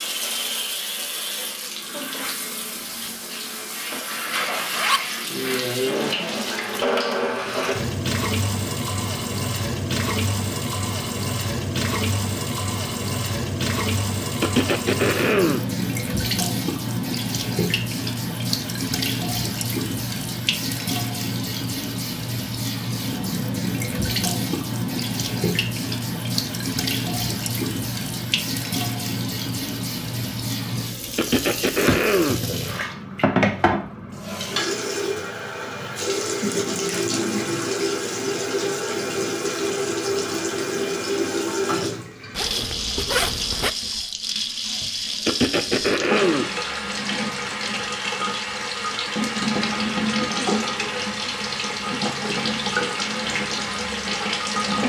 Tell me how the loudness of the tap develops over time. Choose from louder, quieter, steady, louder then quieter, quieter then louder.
steady.